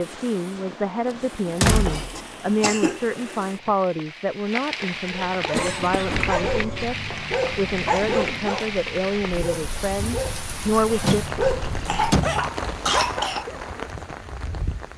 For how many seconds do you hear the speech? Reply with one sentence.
The speech can be heard for 11 seconds in total.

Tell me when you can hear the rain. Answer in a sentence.
You can hear the rain from 0.0 to 14.9 s.